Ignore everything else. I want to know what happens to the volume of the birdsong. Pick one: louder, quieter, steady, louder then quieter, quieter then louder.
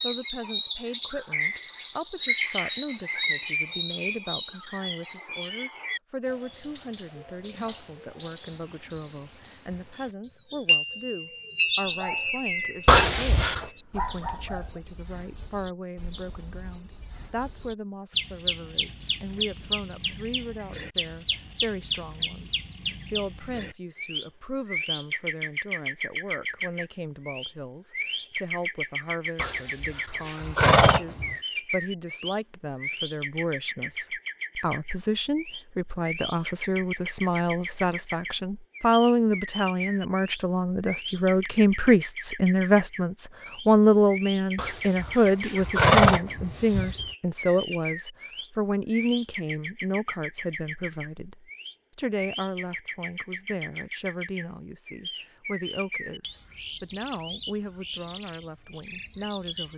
quieter.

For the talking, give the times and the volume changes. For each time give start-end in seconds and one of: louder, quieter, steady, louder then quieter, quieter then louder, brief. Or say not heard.
0.0-59.7 louder then quieter.